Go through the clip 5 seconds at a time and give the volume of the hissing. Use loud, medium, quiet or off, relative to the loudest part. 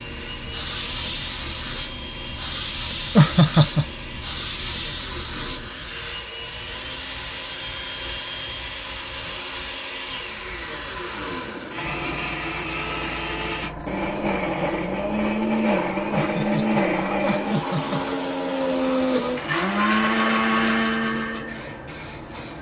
loud, medium, medium, medium, medium.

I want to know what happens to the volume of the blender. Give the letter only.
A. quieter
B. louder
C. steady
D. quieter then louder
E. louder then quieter
B.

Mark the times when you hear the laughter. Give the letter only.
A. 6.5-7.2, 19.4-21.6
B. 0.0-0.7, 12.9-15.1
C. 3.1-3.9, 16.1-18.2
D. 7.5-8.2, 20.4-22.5
C.